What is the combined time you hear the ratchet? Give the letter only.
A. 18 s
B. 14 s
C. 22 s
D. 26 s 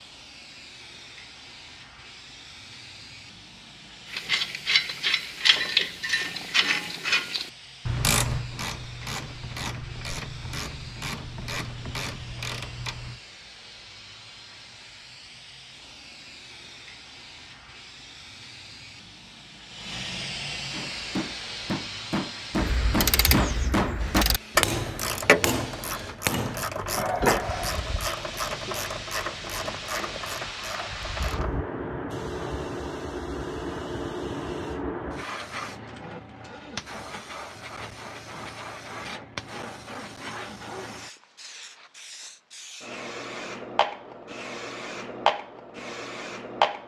A.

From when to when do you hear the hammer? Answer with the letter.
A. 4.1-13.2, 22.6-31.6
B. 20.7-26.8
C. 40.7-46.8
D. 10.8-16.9
B.